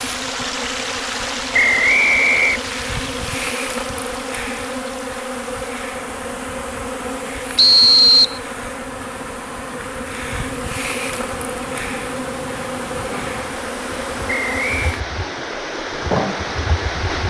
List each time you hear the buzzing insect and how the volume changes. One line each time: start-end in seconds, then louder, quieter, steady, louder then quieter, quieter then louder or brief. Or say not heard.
0.0-17.2 steady.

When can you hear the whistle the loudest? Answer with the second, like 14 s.
8 s.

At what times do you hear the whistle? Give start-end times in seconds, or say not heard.
1.5-2.6, 7.5-8.4, 14.2-15.0.